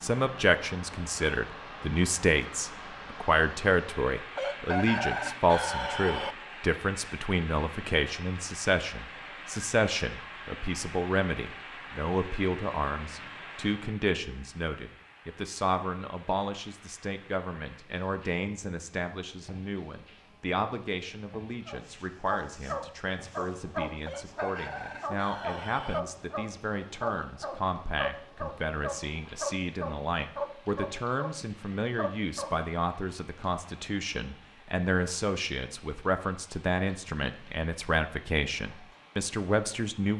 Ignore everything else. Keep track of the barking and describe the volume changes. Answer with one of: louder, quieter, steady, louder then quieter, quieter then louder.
steady.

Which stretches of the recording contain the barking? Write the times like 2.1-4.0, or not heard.
21.6-32.6.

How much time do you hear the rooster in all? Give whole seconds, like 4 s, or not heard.
4 s.